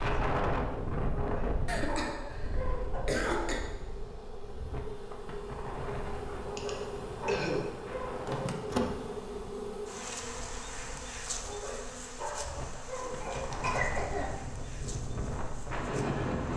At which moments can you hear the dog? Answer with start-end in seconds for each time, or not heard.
1.0-3.7, 6.3-8.6, 11.2-13.7.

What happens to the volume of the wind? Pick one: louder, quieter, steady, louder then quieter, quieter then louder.
quieter then louder.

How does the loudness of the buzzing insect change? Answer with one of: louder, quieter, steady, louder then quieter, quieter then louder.
louder then quieter.